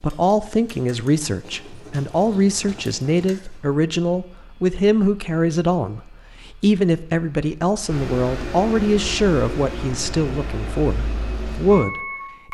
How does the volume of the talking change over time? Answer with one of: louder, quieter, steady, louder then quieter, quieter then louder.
steady.